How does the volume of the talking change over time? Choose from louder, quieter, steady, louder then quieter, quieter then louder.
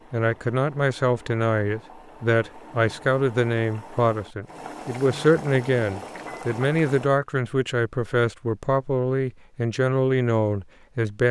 steady.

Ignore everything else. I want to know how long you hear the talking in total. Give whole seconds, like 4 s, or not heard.
11 s.